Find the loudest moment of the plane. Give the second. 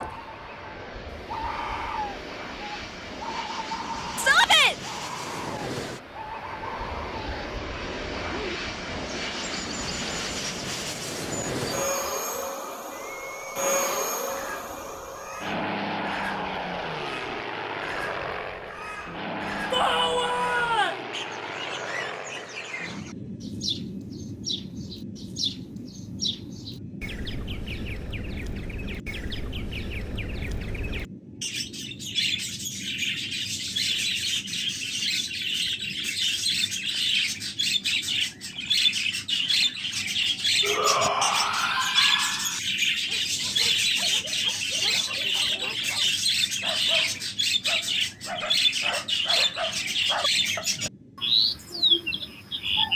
14 s.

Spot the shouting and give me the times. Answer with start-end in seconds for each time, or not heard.
4.2-4.8, 19.7-21.1, 40.6-42.6.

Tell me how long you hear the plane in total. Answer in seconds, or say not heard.
53 s.